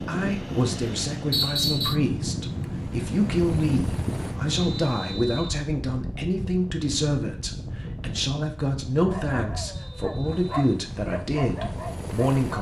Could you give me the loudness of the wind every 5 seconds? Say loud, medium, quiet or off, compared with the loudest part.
loud, medium, medium.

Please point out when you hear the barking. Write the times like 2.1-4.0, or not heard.
9.1-12.2.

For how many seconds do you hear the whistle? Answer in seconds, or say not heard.
3 s.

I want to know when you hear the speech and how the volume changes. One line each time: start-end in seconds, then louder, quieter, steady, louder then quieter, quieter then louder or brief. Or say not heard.
0.1-12.5 steady.